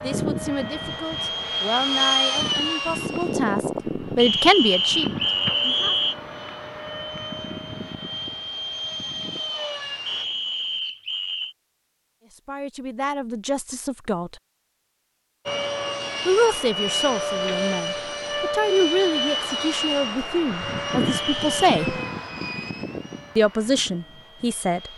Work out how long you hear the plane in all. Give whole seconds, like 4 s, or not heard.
20 s.